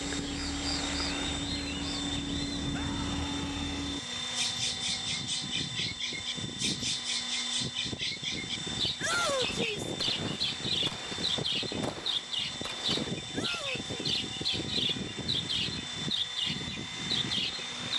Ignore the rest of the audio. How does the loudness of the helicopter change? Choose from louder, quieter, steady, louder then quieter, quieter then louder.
steady.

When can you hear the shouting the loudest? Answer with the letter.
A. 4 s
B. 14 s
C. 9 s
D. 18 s
C.